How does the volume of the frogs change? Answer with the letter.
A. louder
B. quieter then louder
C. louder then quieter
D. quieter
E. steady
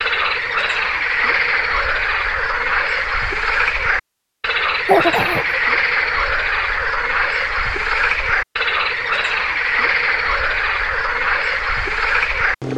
E.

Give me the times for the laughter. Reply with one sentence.
You can hear the laughter from 4.8 to 5.6 s.